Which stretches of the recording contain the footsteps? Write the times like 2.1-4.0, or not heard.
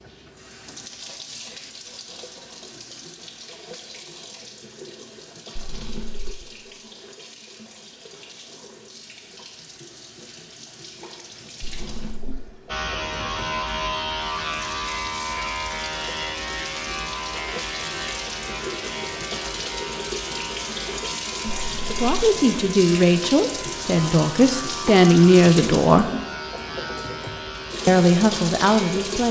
not heard.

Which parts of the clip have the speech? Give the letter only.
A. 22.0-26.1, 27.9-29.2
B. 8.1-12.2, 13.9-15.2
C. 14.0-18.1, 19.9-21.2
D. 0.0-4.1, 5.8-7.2
A.